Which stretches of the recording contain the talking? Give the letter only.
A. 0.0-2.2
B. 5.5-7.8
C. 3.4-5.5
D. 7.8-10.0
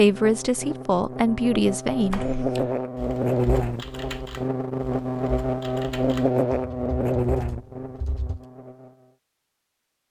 A.